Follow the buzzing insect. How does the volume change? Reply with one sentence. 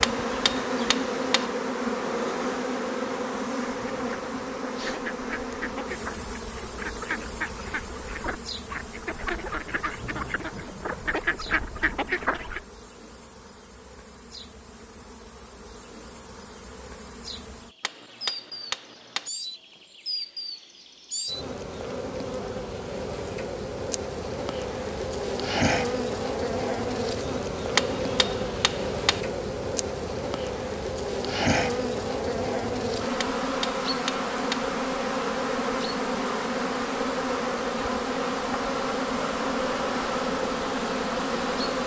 The volume of the buzzing insect goes down, then up.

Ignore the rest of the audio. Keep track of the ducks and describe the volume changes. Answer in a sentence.
The loudness of the ducks goes up.